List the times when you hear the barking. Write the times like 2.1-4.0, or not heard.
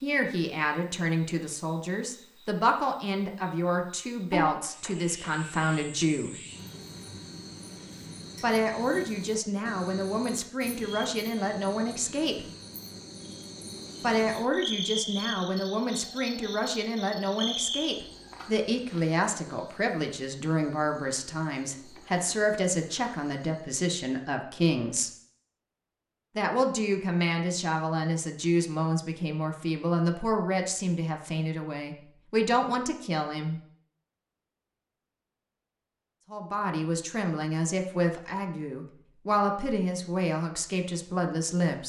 not heard.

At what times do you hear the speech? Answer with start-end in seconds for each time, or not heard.
0.0-6.3, 8.4-12.4, 14.0-25.1, 26.4-33.6, 36.3-41.8.